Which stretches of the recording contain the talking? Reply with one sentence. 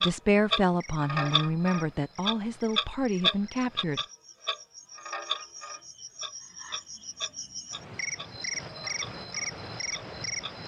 You can hear the talking from 0.0 to 4.0 s.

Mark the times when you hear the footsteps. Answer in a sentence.
You can't hear the footsteps here.